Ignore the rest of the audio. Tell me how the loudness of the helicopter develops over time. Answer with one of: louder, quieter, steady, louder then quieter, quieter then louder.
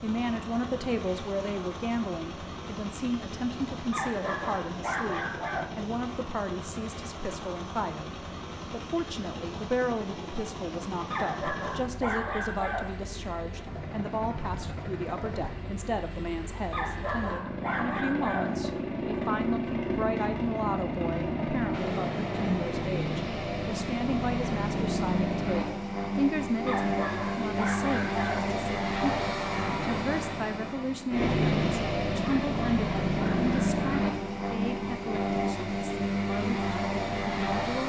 louder.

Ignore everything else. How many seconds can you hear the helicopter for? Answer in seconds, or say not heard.
38 s.